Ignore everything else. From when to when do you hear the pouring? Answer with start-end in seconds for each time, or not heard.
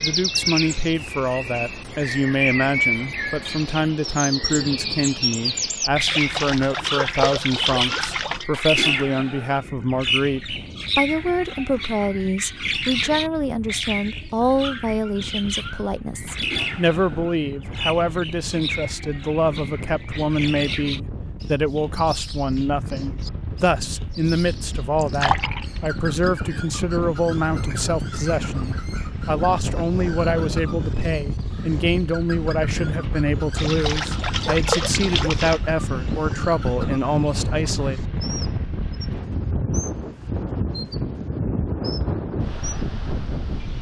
6.0-8.4, 24.9-25.9, 33.5-35.6.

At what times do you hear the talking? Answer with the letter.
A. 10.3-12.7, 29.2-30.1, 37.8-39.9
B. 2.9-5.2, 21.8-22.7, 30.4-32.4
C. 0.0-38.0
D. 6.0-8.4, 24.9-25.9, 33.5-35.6
C.